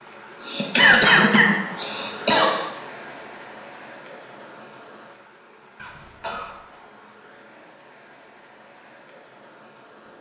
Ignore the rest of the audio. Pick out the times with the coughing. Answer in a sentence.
You can hear the coughing from 0.4 to 2.6 s and from 5.8 to 6.8 s.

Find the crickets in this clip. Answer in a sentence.
You can't hear the crickets here.